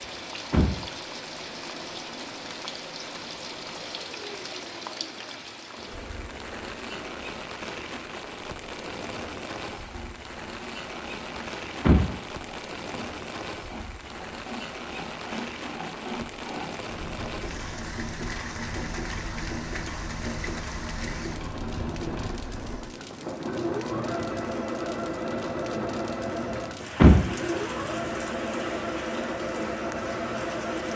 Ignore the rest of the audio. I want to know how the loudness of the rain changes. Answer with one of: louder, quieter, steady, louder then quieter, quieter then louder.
steady.